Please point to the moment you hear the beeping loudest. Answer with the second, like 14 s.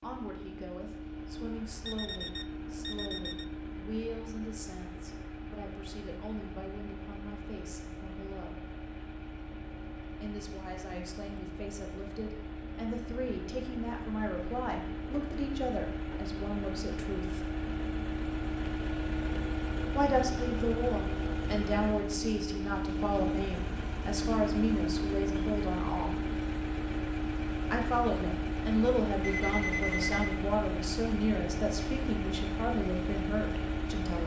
30 s.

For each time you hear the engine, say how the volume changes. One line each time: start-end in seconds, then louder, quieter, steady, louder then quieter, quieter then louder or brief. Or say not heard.
0.0-34.2 louder.